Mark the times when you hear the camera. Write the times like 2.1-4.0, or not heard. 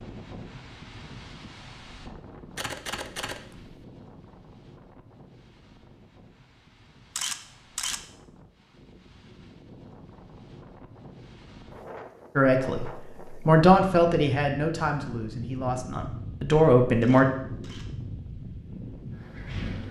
2.5-3.8, 7.2-8.0, 17.0-17.9.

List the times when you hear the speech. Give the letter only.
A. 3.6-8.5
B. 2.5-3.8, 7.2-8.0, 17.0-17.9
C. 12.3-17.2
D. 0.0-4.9
C.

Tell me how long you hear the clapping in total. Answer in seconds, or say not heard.
not heard.